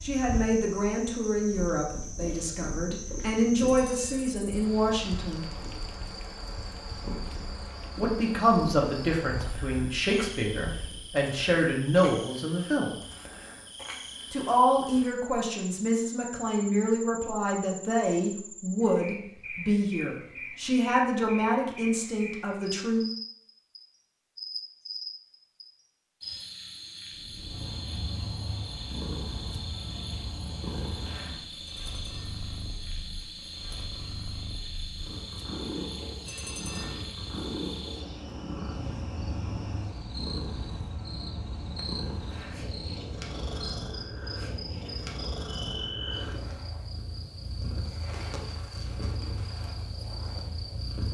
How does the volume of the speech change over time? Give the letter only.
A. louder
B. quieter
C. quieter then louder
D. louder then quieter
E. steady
E.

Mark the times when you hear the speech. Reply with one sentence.
You can hear the speech from 0.0 to 5.5 s, from 8.0 to 12.9 s and from 14.3 to 23.1 s.